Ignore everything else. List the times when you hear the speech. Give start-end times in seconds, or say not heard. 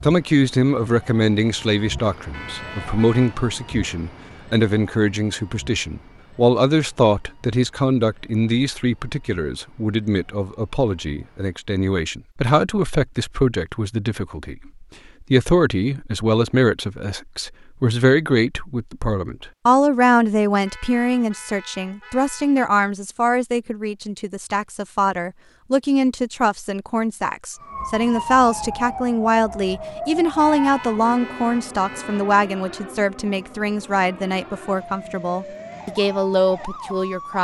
0.0-37.4.